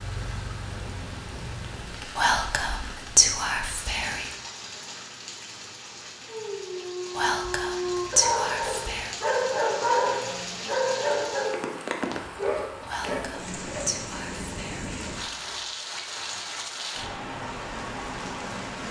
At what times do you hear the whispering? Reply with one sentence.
You can hear the whispering from 2.1 to 4.3 s, from 7.2 to 9.2 s and from 12.8 to 15.6 s.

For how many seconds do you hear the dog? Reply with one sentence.
You can hear the dog for 8 seconds altogether.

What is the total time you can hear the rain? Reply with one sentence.
The rain can be heard for 19 seconds in total.